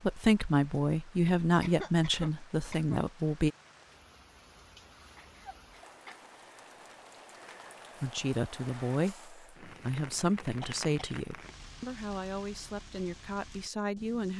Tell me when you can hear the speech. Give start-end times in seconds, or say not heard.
0.0-3.5, 8.0-14.3.